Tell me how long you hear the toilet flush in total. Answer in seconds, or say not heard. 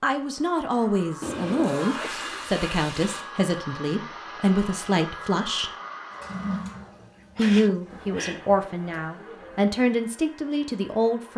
4 s.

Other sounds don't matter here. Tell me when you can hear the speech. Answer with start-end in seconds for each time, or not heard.
0.0-5.7, 7.3-11.3.